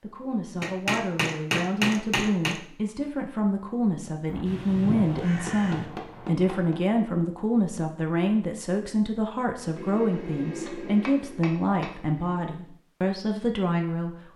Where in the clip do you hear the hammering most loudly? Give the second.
2 s.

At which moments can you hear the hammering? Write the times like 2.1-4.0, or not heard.
0.6-2.6, 4.8-6.8, 9.8-12.5.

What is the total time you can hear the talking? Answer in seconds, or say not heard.
14 s.